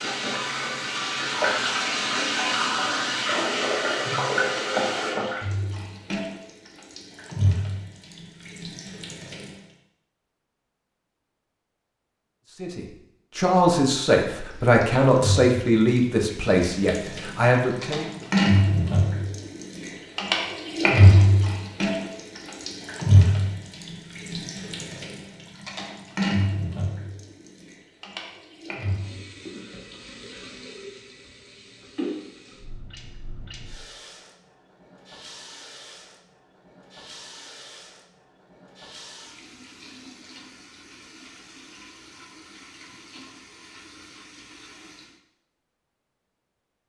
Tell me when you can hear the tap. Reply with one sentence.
You can hear the tap from 0.0 to 9.7 s and from 14.4 to 45.2 s.